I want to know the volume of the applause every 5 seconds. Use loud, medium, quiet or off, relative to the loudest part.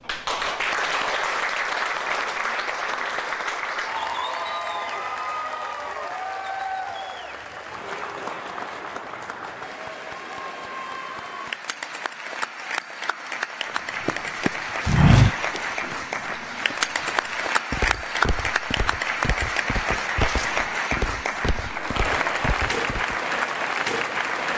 loud, medium, medium, loud, loud.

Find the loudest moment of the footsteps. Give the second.
15 s.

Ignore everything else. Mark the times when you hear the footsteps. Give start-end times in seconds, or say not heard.
13.7-23.1.